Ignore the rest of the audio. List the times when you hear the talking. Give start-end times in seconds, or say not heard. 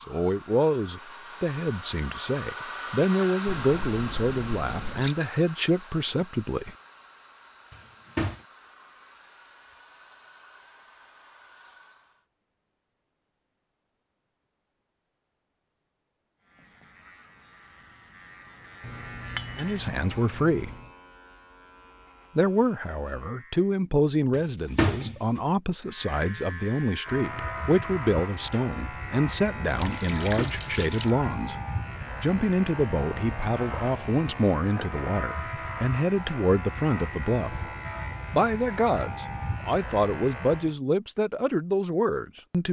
0.1-6.7, 19.6-20.7, 22.4-31.6, 32.2-37.7, 38.3-42.6.